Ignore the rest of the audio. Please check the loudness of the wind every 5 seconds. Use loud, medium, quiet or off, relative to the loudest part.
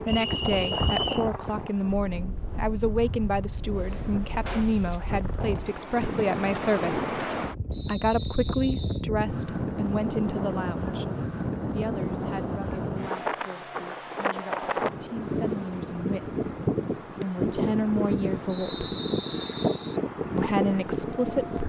medium, loud, loud, loud, loud.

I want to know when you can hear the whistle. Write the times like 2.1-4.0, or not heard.
0.1-1.3, 7.7-9.1, 18.4-20.0.